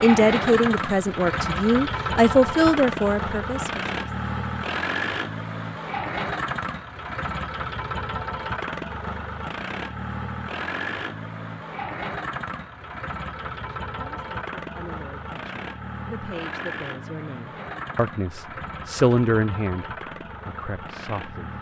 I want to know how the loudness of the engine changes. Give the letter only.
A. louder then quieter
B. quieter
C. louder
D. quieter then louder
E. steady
B.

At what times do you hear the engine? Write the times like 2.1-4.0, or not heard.
0.0-21.5.